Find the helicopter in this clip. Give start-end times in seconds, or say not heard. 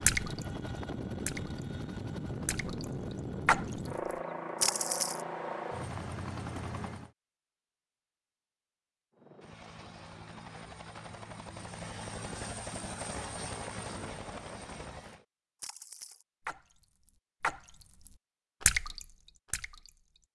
0.0-7.1, 9.1-15.2.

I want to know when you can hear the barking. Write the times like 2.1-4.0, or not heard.
not heard.